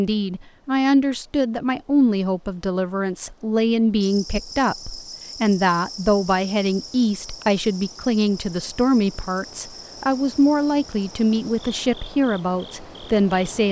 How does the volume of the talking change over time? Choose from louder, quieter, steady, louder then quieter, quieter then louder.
steady.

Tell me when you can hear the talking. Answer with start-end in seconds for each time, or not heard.
0.0-13.6.